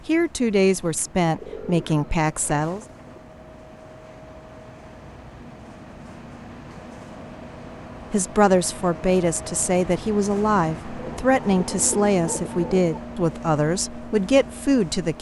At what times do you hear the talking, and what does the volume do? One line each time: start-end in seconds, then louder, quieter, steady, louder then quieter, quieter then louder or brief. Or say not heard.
0.1-2.8 brief
8.1-15.1 steady.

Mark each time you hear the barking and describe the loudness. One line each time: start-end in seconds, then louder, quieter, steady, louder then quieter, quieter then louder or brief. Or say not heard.
not heard.